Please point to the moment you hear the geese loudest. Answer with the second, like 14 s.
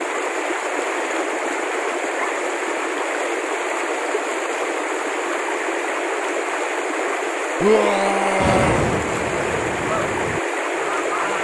9 s.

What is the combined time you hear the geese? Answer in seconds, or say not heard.
3 s.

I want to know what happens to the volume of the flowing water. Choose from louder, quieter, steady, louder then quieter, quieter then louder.
steady.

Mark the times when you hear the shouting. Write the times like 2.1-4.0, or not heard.
7.6-8.9.